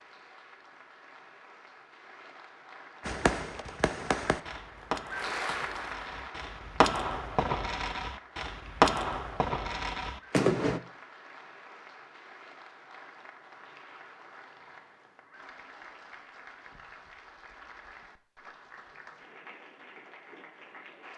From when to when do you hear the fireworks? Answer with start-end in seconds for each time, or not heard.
3.0-10.8.